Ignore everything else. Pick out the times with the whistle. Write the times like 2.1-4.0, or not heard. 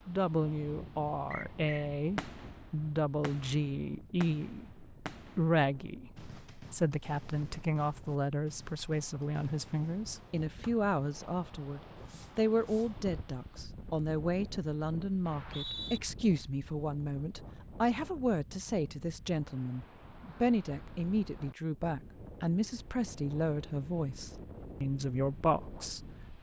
1.3-1.9, 15.2-16.0.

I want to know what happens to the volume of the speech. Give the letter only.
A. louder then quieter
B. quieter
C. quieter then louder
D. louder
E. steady
E.